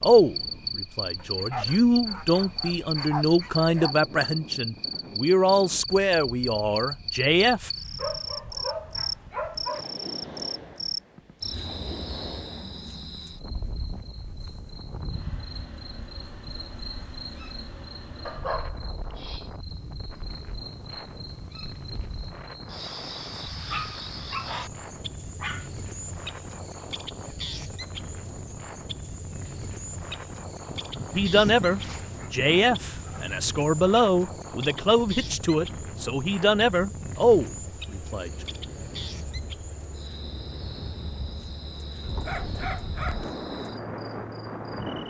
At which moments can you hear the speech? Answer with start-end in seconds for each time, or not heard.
0.0-7.7, 31.1-38.4.